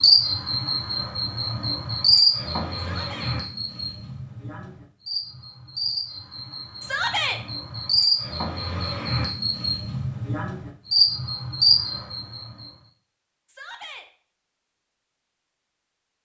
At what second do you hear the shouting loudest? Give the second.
7 s.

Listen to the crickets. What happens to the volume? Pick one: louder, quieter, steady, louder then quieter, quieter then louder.
quieter then louder.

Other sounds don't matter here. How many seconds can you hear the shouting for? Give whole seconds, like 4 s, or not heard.
2 s.